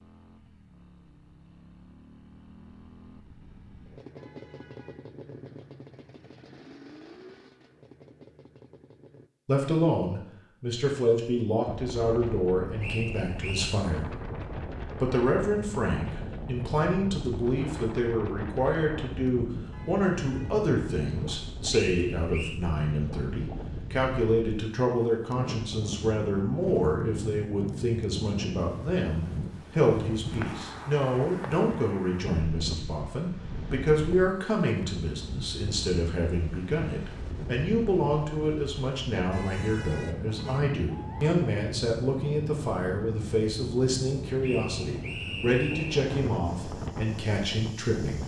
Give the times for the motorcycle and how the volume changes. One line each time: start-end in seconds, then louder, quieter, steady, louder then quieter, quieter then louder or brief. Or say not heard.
0.0-9.3 louder then quieter.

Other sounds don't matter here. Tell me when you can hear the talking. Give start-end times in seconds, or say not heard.
9.4-14.1, 15.0-48.2.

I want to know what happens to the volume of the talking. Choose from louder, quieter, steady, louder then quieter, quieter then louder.
steady.